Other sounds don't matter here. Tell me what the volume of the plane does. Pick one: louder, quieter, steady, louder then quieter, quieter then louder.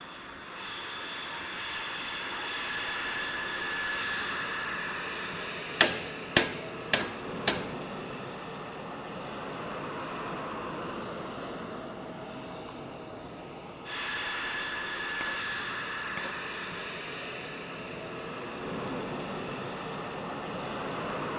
steady.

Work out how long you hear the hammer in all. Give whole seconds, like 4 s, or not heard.
3 s.